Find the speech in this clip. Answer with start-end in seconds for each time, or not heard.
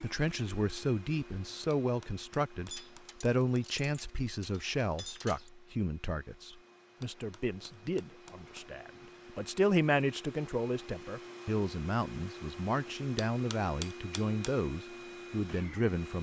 0.0-16.1.